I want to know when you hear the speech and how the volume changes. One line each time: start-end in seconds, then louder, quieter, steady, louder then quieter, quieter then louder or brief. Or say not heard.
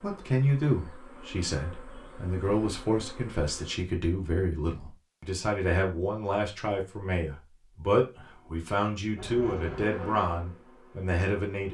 0.0-11.6 steady.